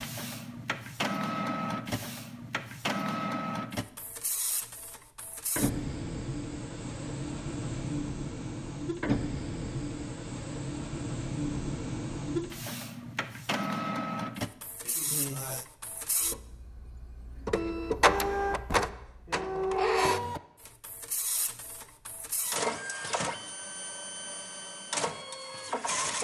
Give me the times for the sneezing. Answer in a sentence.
You can hear the sneezing from 14.8 to 15.7 s.